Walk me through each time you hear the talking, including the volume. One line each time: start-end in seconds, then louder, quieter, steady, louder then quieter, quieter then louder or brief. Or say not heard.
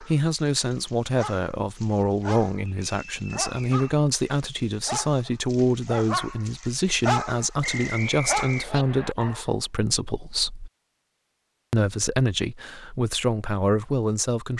0.0-10.7 steady
11.7-14.5 brief.